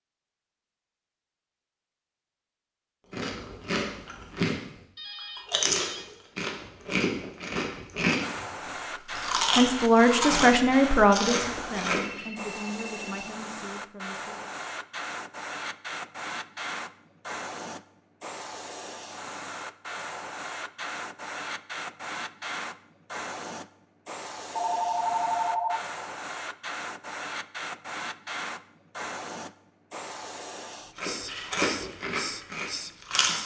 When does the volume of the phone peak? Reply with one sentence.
The loudest moment of the phone is at 25 seconds.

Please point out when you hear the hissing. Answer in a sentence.
You can hear the hissing from 8.2 to 33.4 s.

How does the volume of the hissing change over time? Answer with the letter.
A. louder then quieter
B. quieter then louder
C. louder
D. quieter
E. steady
E.